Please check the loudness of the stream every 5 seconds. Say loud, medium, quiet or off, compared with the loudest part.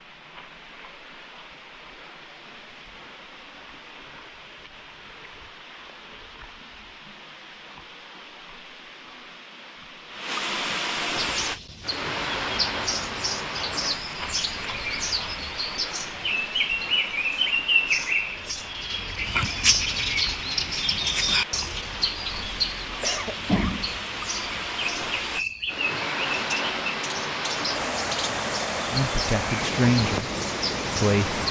quiet, quiet, loud, medium, medium, loud, loud.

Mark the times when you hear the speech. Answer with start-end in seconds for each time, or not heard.
28.9-30.2, 30.9-31.4.